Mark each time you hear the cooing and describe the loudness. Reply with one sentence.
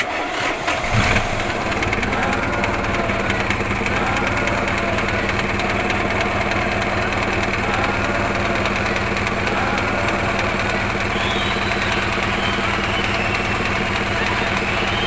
You can't hear the cooing here.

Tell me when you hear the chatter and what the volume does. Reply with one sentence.
You can hear the chatter from 0.0 to 15.0 s, at a steady volume.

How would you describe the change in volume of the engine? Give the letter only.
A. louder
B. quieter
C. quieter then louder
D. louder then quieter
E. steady
E.